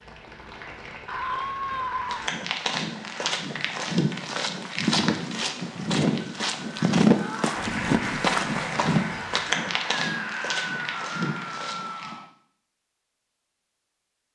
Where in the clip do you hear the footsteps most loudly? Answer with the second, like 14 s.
7 s.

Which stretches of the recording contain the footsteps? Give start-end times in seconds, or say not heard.
2.0-12.2.